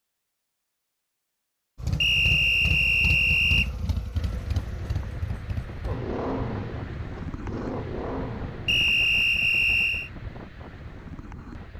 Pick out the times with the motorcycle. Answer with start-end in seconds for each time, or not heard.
1.8-9.2.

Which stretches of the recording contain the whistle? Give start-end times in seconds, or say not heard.
2.0-3.7, 8.7-10.1.